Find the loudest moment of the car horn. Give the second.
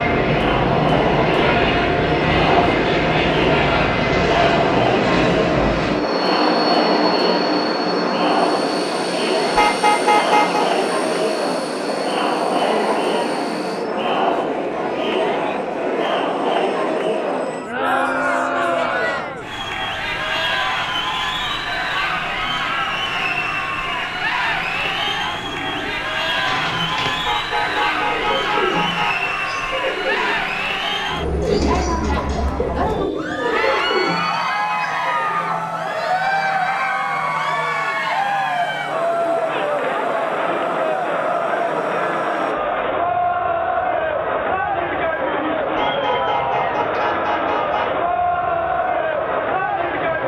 10 s.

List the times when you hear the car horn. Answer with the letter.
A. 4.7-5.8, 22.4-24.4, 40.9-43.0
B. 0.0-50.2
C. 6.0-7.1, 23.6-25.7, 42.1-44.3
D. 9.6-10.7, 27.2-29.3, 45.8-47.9
D.